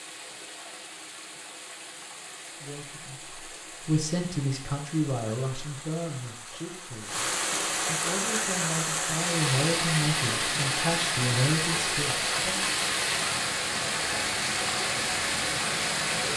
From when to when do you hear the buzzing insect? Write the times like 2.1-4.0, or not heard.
not heard.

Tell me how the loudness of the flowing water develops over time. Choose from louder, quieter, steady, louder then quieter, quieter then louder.
louder.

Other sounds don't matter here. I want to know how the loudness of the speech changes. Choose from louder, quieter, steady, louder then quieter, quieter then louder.
quieter then louder.